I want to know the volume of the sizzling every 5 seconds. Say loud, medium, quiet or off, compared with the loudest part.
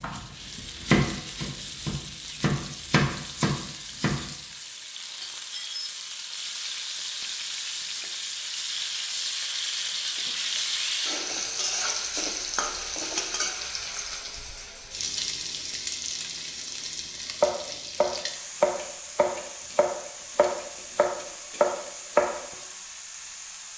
medium, loud, loud, medium, medium.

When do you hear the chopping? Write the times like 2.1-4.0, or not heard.
0.0-4.2, 17.3-22.4.